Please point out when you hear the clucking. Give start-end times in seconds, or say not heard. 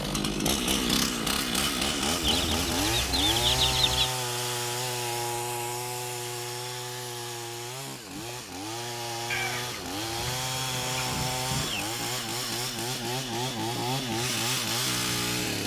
2.2-4.1, 9.3-11.8.